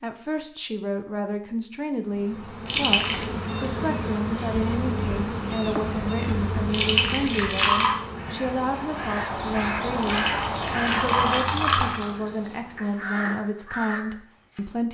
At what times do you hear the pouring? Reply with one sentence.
You can hear the pouring from 2.6 to 3.2 s, from 6.7 to 8.0 s and from 10.0 to 12.1 s.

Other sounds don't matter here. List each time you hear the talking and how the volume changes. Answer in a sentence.
You can hear the talking from 0.0 to 14.8 s, at a steady volume.